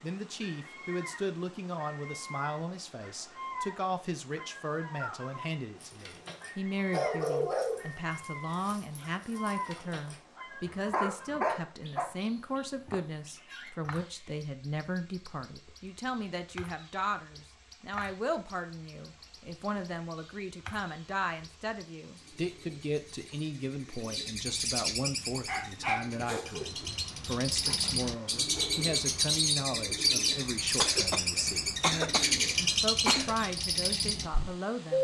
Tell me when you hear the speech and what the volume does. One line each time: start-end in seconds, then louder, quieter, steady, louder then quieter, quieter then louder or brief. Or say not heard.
0.0-34.9 steady.